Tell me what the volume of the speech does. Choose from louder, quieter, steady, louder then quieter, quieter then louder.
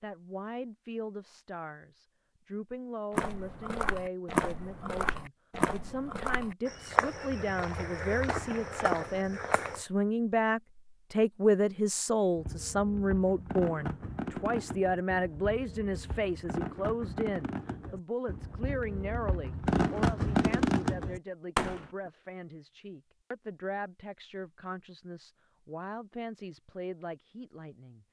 louder then quieter.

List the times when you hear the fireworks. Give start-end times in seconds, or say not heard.
12.3-22.1.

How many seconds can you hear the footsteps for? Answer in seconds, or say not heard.
7 s.